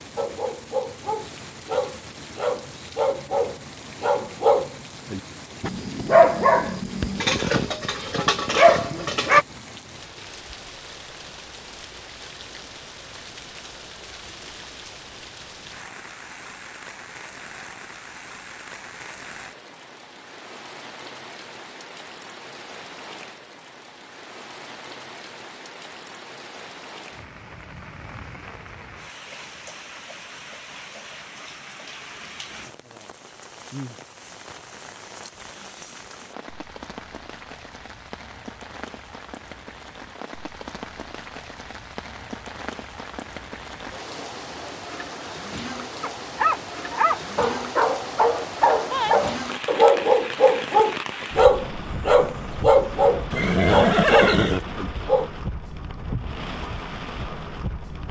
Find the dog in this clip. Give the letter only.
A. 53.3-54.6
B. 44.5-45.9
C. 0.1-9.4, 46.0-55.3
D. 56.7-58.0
C.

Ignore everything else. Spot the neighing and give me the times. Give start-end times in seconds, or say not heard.
53.3-54.6.